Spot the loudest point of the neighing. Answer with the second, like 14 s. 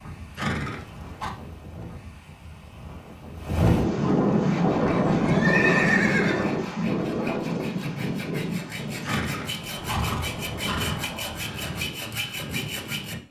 6 s.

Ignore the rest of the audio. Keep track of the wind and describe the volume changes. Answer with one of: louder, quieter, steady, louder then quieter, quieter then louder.
louder then quieter.